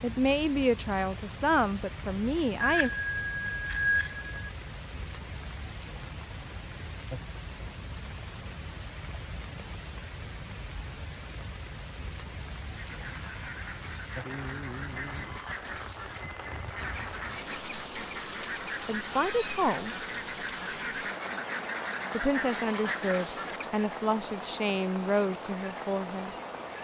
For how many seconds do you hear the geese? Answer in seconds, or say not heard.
11 s.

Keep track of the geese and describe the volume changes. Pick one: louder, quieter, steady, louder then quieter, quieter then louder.
louder.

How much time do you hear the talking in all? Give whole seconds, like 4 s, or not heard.
8 s.